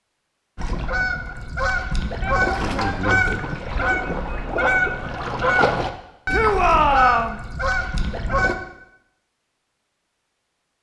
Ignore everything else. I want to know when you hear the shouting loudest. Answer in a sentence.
The loudest moment of the shouting is at 7 seconds.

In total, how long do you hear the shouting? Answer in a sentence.
The shouting can be heard for 2 seconds in total.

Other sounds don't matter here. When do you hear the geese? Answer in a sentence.
You can hear the geese from 0.6 to 8.6 s.